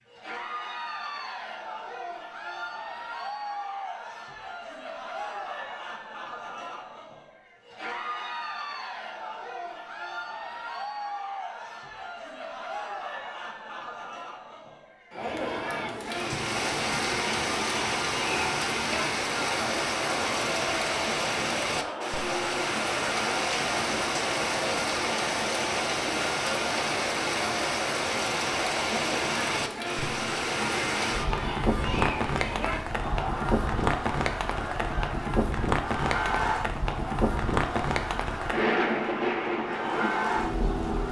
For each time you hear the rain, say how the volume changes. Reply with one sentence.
The rain can be heard from 16.1 to 41.0 s, at a steady volume.